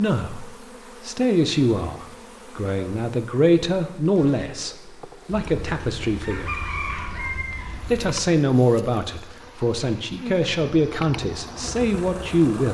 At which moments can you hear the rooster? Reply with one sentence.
You can hear the rooster from 5.3 to 8.1 s.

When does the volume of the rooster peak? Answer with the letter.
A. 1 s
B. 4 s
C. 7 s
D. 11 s
C.